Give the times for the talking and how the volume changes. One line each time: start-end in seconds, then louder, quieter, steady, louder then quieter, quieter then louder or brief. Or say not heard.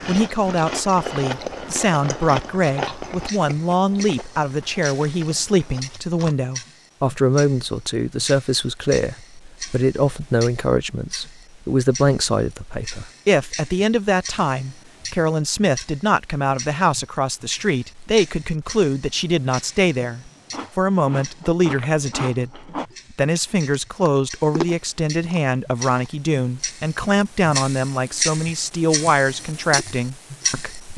0.1-30.9 steady.